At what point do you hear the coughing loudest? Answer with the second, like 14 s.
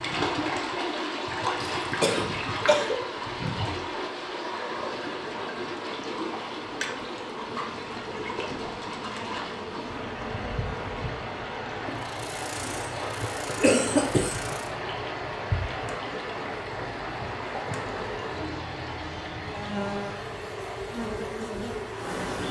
14 s.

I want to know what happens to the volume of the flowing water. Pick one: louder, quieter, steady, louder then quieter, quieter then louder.
quieter.